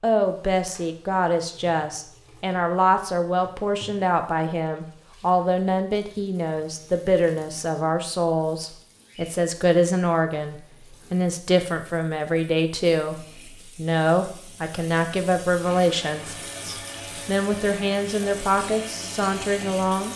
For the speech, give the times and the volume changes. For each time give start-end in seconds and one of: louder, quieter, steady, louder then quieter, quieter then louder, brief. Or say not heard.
0.0-20.1 steady.